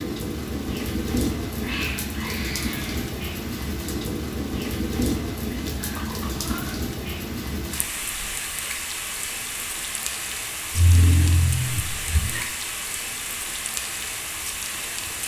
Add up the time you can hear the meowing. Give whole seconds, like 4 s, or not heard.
4 s.